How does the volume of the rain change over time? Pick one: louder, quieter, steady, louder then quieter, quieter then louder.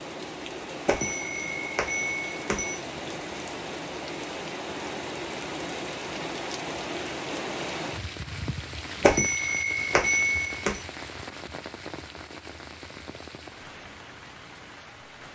quieter.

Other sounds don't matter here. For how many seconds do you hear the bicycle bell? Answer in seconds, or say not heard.
4 s.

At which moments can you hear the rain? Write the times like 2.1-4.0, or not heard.
0.0-15.2.